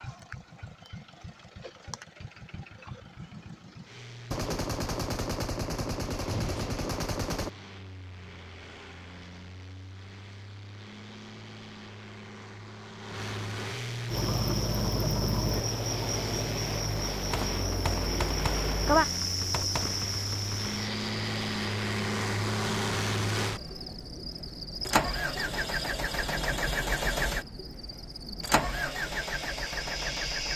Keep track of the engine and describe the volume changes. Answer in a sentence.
The volume of the engine goes up.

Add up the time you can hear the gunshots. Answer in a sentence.
You can hear the gunshots for 7 seconds altogether.